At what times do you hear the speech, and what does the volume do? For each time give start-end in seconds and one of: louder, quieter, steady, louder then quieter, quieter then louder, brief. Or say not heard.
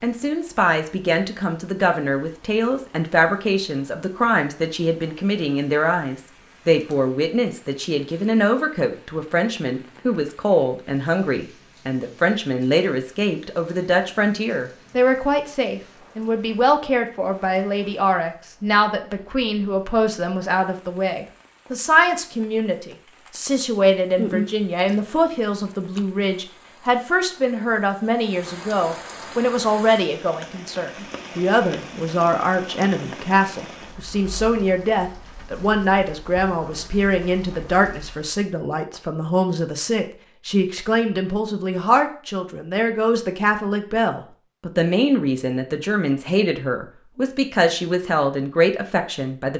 0.0-49.5 steady.